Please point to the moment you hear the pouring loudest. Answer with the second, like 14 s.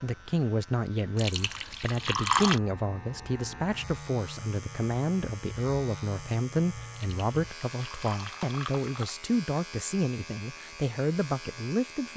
2 s.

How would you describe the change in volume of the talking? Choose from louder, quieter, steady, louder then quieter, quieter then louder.
steady.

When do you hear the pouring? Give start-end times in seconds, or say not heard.
1.1-2.6, 6.9-9.2.